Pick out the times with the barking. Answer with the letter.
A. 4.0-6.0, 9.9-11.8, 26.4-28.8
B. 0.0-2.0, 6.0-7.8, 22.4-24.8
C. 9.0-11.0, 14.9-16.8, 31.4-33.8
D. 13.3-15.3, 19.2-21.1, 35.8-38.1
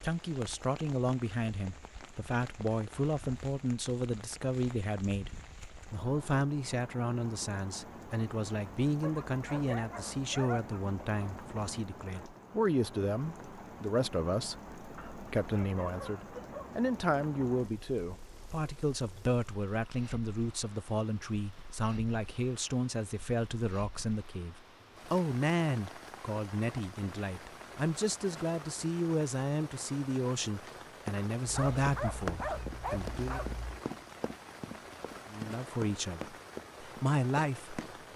C.